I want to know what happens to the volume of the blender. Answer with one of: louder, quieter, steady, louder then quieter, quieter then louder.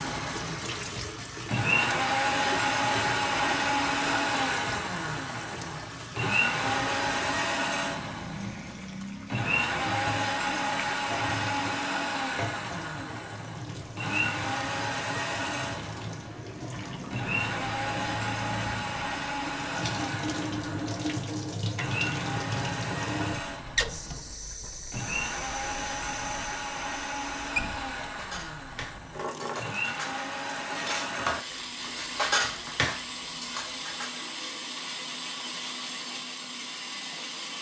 quieter.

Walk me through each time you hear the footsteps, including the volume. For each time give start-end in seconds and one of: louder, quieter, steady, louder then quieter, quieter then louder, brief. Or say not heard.
not heard.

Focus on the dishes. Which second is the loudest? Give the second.
32 s.